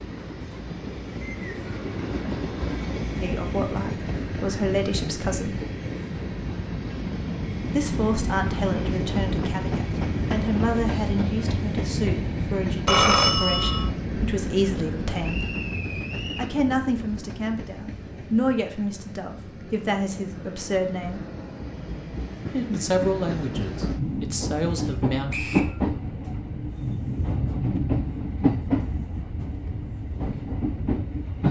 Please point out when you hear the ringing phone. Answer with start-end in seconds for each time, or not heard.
12.8-13.9.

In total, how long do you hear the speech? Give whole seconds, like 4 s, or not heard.
18 s.